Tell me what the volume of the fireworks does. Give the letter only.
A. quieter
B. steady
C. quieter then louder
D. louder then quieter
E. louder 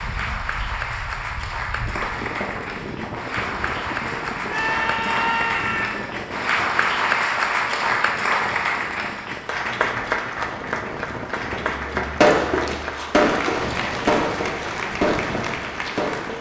A.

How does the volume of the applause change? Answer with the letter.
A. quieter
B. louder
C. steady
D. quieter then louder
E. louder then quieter
E.